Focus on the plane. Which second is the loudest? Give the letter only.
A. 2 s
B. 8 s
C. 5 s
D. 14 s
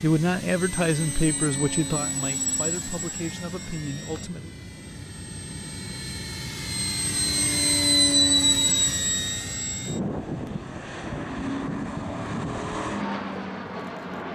B.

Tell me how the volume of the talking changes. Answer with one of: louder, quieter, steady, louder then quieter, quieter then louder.
quieter.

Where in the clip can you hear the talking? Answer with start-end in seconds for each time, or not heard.
0.0-4.5.